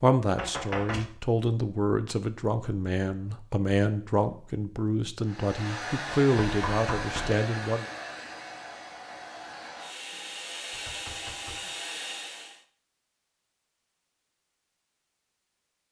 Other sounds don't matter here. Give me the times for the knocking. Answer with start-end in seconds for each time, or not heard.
0.3-1.1, 6.4-7.4, 10.7-11.7.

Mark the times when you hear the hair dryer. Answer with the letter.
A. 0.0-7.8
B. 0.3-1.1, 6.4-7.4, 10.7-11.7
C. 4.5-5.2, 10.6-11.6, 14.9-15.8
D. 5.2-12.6
D.